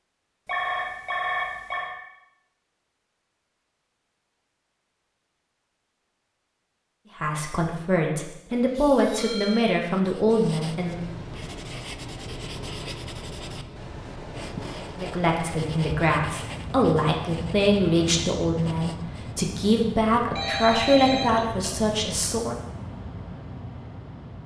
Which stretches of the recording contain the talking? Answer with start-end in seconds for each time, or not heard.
7.2-11.1, 14.9-22.6.